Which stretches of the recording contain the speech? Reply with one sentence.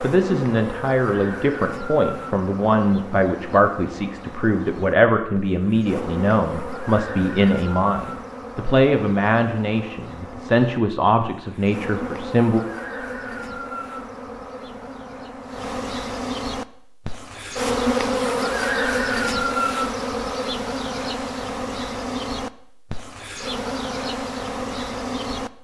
The speech can be heard from 0.0 to 12.6 s.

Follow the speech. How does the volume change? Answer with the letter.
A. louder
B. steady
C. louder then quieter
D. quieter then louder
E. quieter
B.